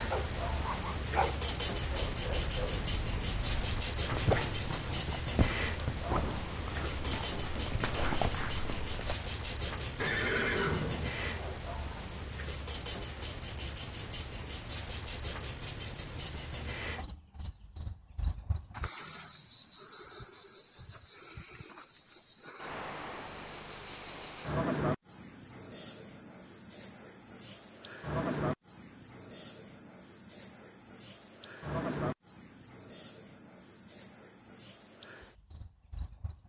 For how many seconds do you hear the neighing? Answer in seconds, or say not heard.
2 s.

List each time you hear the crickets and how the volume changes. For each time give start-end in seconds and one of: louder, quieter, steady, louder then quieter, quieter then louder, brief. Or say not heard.
0.0-36.4 quieter.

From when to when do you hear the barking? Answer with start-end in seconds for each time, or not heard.
0.1-9.2.